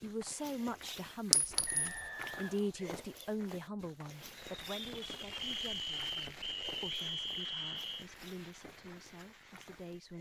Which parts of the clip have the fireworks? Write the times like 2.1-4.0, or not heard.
4.0-10.1.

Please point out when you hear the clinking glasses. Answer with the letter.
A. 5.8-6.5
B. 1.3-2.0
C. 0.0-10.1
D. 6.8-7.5
B.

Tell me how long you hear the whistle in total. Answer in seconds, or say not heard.
4 s.